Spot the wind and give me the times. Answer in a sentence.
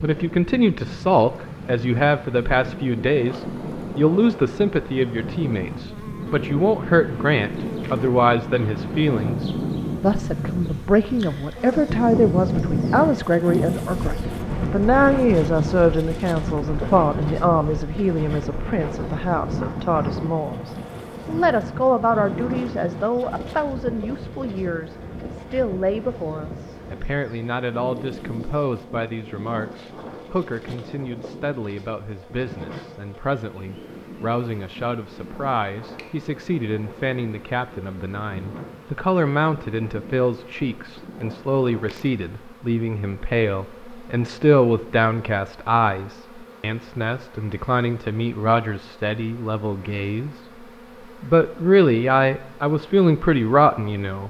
You can hear the wind from 0.0 to 42.0 s.